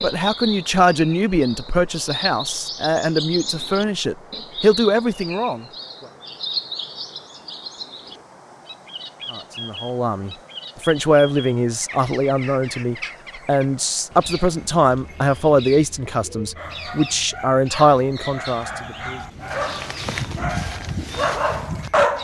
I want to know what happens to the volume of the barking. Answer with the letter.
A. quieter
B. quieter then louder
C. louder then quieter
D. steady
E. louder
E.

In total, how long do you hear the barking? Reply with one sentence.
The barking can be heard for 6 seconds in total.